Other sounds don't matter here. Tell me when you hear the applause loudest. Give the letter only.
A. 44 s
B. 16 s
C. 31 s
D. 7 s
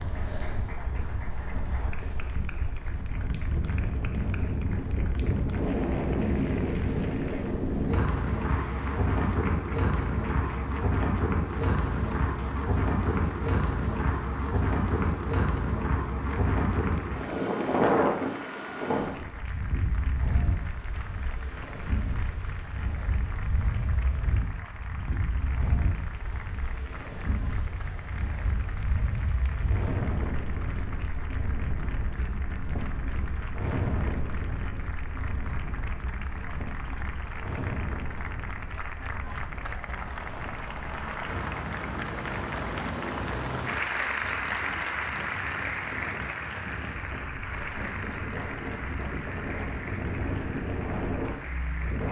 A.